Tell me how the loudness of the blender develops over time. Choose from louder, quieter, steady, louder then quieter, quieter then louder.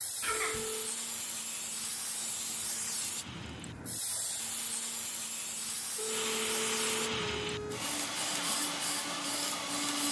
louder.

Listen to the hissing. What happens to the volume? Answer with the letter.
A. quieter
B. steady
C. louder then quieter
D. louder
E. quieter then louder
B.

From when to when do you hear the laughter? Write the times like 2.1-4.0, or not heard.
0.2-0.7.